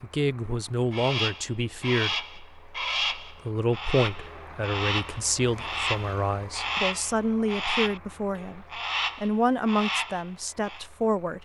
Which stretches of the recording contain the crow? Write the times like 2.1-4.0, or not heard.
0.9-10.8.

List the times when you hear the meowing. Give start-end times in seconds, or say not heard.
not heard.